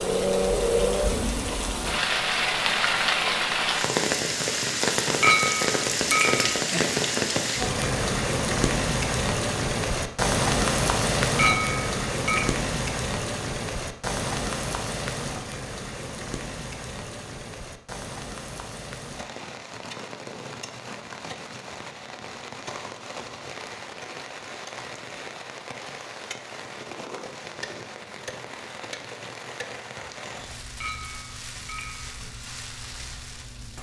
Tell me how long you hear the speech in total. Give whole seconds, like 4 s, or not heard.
not heard.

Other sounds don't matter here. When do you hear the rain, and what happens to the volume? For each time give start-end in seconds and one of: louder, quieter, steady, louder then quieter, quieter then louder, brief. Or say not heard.
0.0-33.7 quieter.